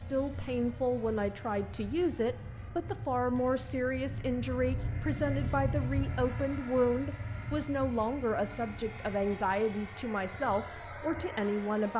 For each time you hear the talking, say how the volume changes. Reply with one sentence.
The talking can be heard from 0.0 to 11.9 s, at a steady volume.